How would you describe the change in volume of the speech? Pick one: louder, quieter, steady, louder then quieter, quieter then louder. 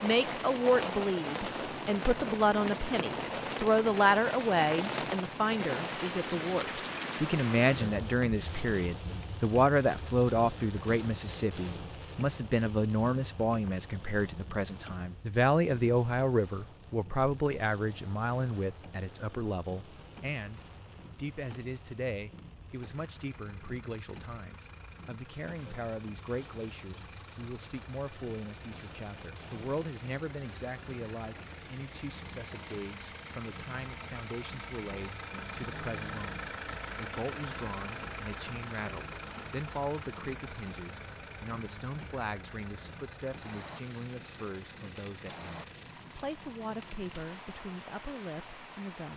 quieter.